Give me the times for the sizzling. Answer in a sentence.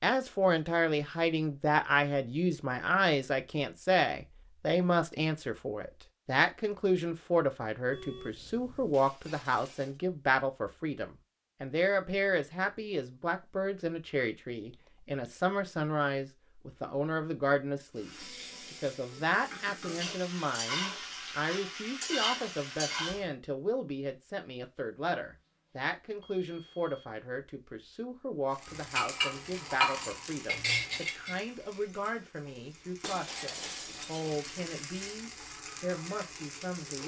The sizzling can be heard from 17.9 to 23.3 s and from 28.5 to 37.0 s.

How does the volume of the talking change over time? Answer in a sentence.
The volume of the talking goes down.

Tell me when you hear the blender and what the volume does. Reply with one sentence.
You can't hear the blender here.